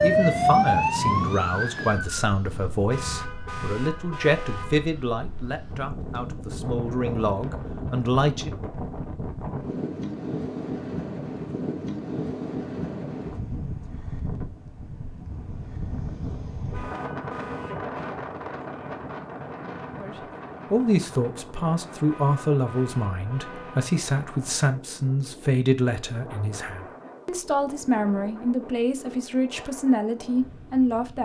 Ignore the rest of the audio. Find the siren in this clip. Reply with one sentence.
The siren can be heard from 0.0 to 2.2 s.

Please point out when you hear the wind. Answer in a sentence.
You can hear the wind from 0.0 to 31.2 s.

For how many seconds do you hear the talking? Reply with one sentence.
The talking can be heard for 20 seconds in total.